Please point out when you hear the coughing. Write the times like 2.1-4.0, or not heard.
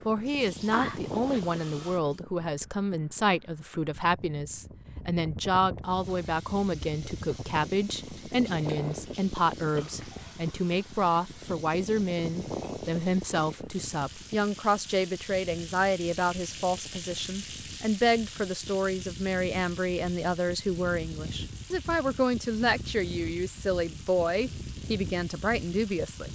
0.7-1.4.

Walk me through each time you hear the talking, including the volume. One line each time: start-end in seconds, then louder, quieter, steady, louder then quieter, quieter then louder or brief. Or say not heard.
0.1-26.2 steady.